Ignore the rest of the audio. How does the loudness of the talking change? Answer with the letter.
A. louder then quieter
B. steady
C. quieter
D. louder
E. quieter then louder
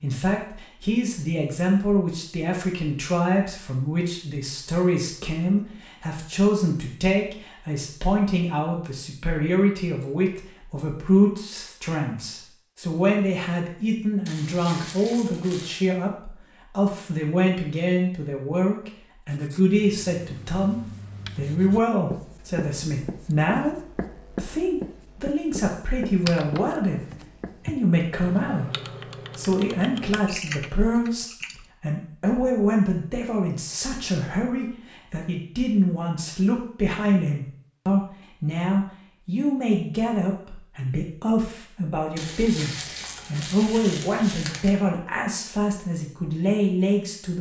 B.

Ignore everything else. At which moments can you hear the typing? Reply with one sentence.
The typing can be heard from 26.2 to 31.6 s.